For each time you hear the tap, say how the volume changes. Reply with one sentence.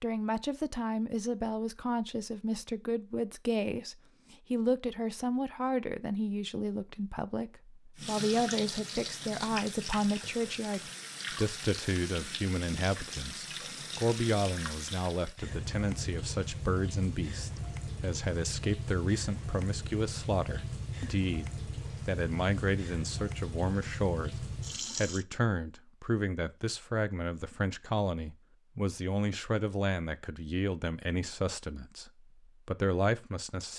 The tap can be heard from 8.0 to 25.2 s, at a steady volume.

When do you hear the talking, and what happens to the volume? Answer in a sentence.
You can hear the talking from 0.0 to 33.7 s, at a steady volume.